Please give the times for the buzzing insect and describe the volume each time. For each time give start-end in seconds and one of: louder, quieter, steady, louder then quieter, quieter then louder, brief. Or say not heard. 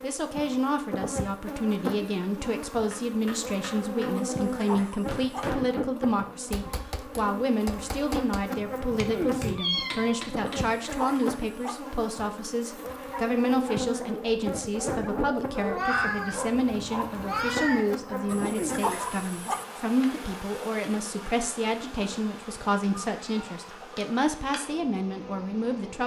0.0-26.0 quieter.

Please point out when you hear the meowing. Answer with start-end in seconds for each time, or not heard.
9.5-10.2, 15.5-17.9.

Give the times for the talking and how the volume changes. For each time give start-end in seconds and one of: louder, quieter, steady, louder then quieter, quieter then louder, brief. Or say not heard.
0.0-26.0 steady.